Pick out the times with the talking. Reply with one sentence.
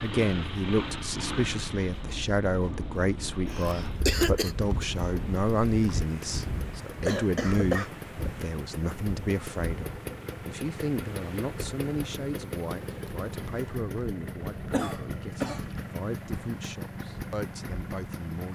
You can hear the talking from 0.0 to 18.4 s.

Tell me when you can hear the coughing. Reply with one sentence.
The coughing can be heard from 3.5 to 4.5 s, from 7.0 to 7.9 s and from 14.7 to 15.7 s.